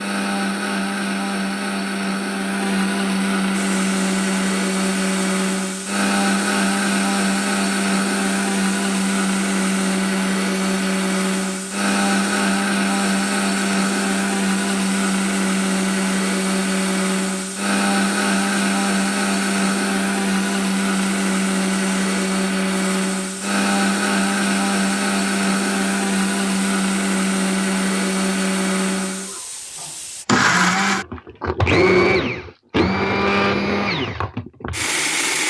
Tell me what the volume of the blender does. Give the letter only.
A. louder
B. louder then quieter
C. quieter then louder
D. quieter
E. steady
E.